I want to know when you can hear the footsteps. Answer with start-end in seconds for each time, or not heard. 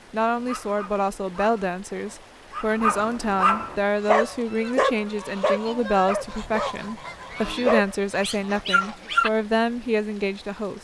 not heard.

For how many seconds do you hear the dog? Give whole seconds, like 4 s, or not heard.
9 s.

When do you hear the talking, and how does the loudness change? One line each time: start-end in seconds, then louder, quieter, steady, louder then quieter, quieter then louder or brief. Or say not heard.
0.1-10.7 steady.